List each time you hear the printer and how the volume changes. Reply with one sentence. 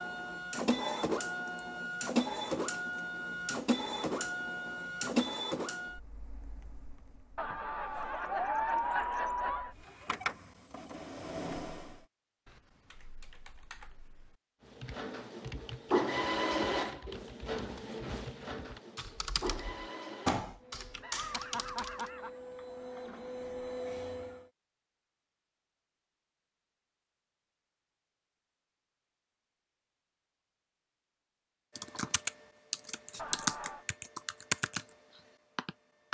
The printer can be heard from 0.0 to 11.9 s, getting quieter then louder; and from 14.8 to 24.4 s, getting quieter then louder.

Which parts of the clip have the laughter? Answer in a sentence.
The laughter can be heard from 7.3 to 9.7 s, from 21.0 to 22.4 s and from 33.1 to 33.9 s.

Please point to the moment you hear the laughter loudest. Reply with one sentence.
The loudest moment of the laughter is at 9 seconds.